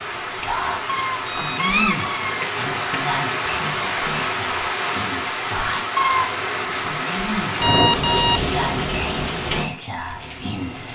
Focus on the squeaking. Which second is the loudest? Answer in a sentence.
The volume of the squeaking peaks at 2 seconds.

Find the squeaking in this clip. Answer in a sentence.
You can hear the squeaking from 0.8 to 3.0 s and from 6.0 to 6.5 s.